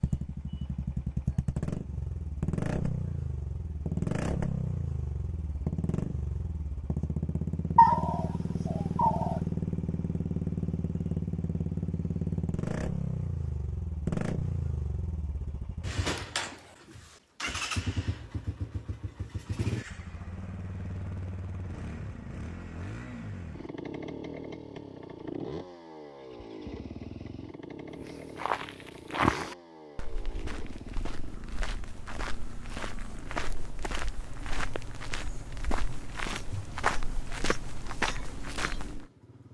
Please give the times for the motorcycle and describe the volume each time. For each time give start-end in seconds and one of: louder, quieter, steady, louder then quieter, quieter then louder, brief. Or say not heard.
0.0-39.4 quieter.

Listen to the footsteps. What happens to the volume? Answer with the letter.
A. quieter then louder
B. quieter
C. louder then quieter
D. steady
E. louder
A.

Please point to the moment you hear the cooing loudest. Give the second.
8 s.